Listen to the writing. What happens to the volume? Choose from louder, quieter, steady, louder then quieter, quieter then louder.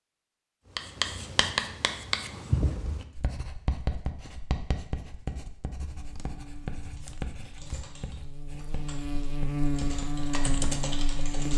quieter.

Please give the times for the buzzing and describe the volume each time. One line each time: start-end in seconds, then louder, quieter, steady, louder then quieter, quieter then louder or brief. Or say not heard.
5.8-11.5 louder.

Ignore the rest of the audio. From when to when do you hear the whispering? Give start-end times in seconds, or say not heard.
not heard.